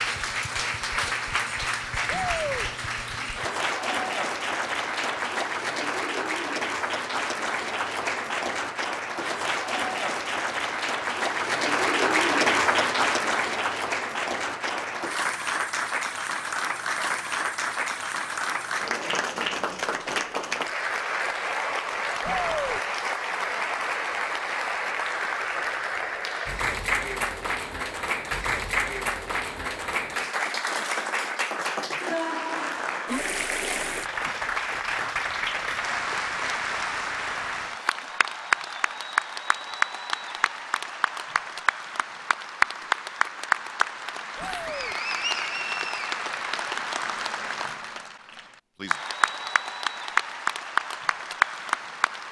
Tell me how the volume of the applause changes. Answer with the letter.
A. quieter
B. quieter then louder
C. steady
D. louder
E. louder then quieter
C.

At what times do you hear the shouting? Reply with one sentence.
You can hear the shouting from 2.0 to 2.7 s, from 22.2 to 22.8 s and from 44.4 to 45.0 s.